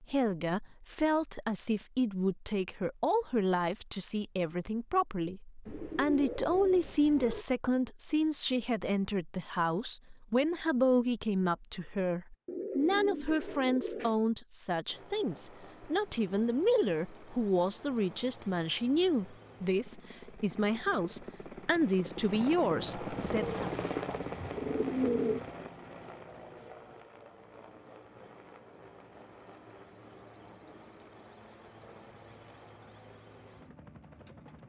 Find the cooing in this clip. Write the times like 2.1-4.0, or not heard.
5.7-7.5, 12.4-14.2, 23.2-25.4.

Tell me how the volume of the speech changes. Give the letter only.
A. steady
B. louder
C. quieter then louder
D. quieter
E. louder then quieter
A.